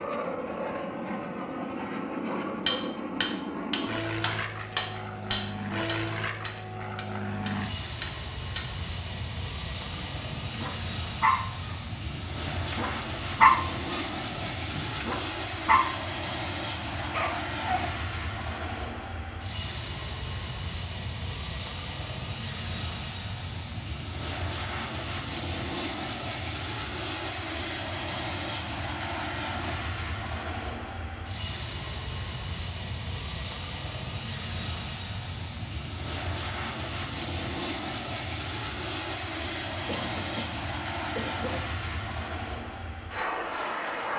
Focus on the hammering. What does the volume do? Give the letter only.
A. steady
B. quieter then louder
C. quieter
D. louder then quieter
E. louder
B.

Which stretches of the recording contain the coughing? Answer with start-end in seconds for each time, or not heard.
39.9-41.6.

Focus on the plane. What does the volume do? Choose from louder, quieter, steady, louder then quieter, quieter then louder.
steady.